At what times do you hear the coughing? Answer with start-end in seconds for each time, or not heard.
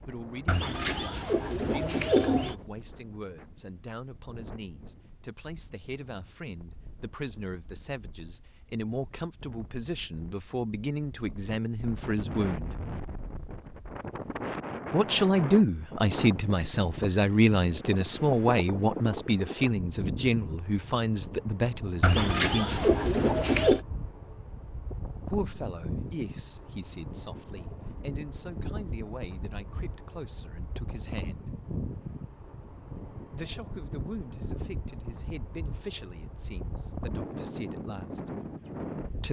not heard.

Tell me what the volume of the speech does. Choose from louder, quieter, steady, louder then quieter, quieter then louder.
louder then quieter.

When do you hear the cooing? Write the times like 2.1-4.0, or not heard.
0.5-2.5, 22.0-23.8.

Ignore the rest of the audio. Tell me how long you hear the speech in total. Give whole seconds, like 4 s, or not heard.
32 s.